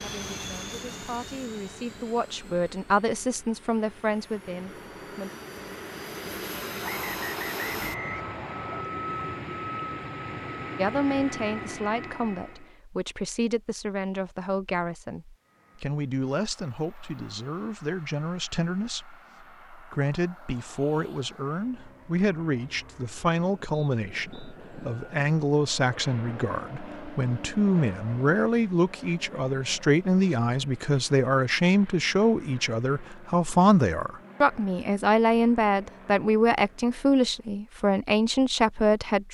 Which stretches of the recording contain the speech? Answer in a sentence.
The speech can be heard from 0.0 to 5.3 s and from 10.8 to 39.2 s.